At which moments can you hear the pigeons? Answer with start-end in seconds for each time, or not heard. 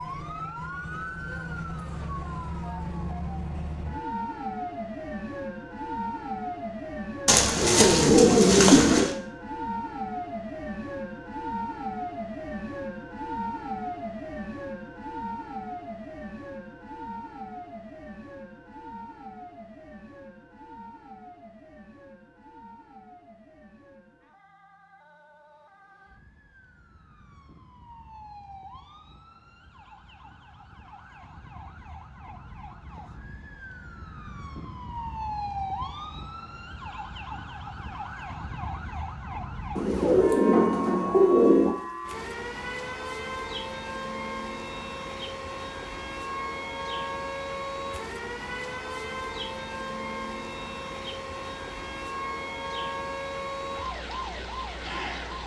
7.2-9.1, 39.8-41.7.